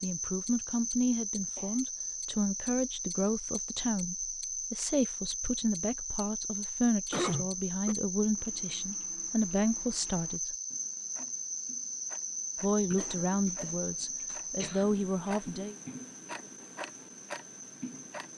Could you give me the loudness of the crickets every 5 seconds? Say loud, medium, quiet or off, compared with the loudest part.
loud, loud, loud, quiet.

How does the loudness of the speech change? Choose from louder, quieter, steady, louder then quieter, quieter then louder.
steady.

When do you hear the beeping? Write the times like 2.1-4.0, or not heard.
not heard.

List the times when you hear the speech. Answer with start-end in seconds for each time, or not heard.
0.0-10.6, 12.6-15.8.